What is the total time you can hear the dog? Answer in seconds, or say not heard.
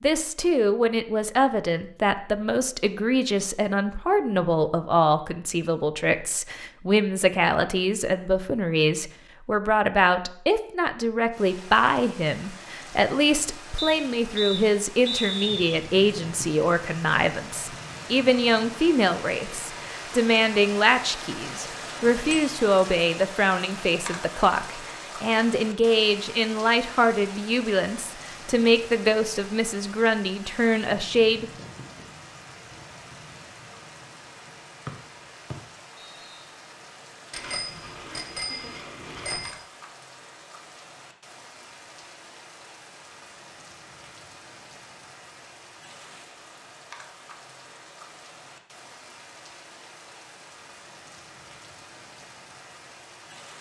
not heard.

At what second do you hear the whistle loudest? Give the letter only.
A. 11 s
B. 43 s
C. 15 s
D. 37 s
C.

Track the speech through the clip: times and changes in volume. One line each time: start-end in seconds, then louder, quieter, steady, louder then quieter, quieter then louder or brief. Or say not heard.
0.0-31.4 steady.